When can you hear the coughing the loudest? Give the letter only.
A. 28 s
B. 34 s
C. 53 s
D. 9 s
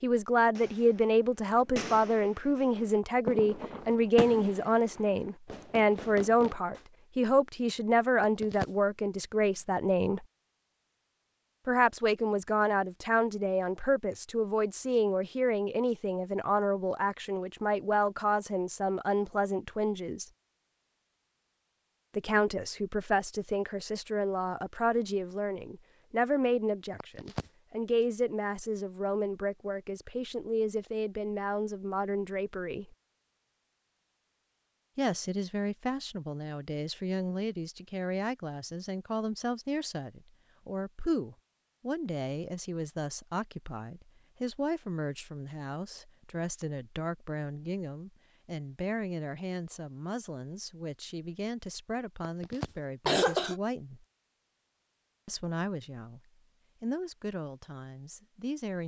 C.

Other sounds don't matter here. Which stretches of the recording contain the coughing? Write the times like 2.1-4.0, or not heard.
8.2-8.7, 27.0-27.4, 52.2-53.6.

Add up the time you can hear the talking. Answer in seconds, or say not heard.
52 s.